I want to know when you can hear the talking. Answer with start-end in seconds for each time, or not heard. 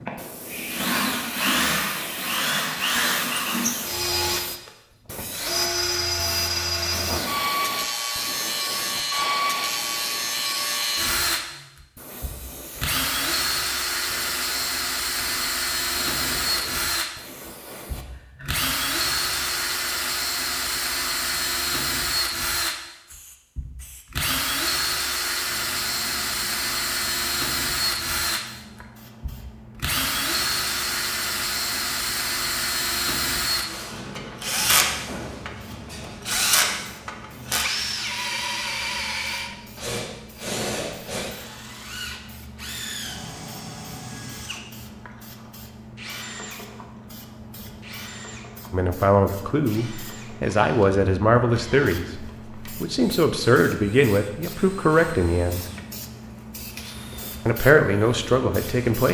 48.7-55.6, 57.5-59.0.